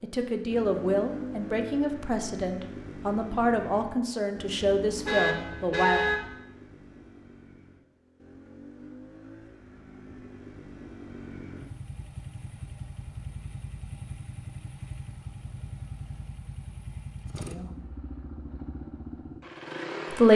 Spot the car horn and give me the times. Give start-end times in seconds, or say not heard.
4.8-6.2.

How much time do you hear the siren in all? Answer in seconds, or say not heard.
not heard.